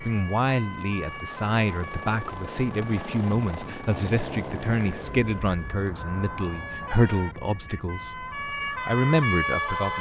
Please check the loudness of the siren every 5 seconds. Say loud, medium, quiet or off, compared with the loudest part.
medium, loud.